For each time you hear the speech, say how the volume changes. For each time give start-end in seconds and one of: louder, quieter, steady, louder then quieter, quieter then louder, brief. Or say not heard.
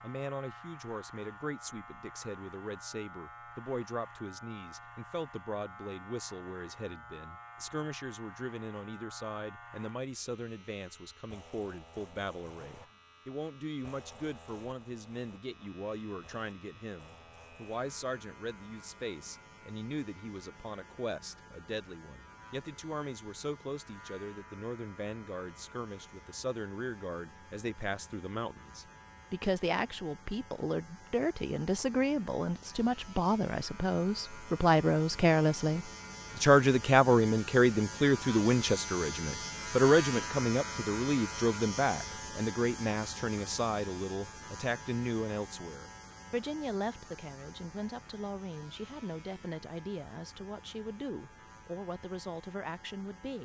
0.0-53.4 louder then quieter.